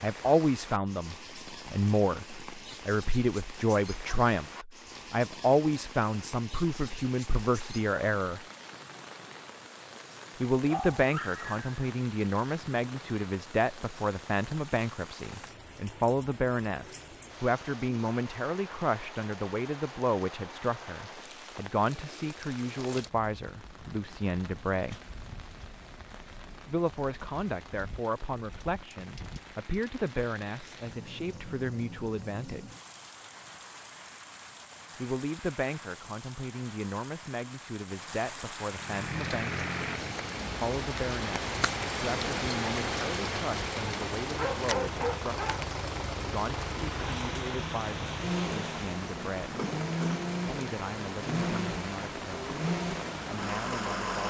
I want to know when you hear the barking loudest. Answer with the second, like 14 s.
45 s.